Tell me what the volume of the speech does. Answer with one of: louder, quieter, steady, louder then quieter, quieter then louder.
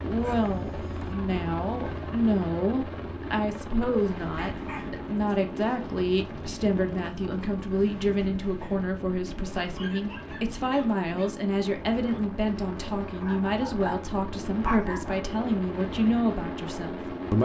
steady.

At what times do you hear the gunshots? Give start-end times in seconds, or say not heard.
not heard.